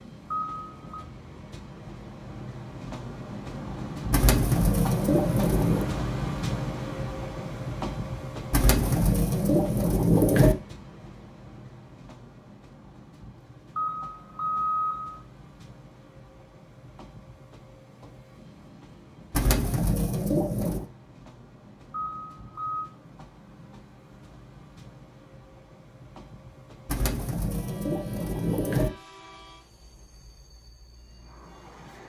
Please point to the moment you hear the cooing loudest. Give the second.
10 s.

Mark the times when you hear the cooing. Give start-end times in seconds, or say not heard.
4.1-5.9, 8.5-10.6, 19.3-20.9, 26.9-28.9.